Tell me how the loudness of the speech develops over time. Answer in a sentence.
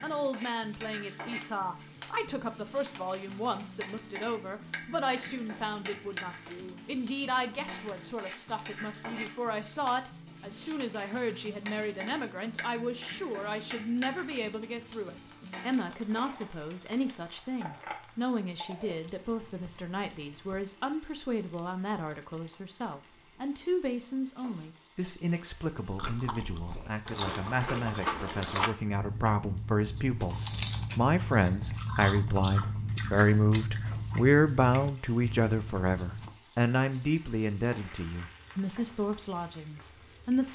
The volume of the speech goes up.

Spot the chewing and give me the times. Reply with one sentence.
You can hear the chewing from 25.9 to 36.4 s.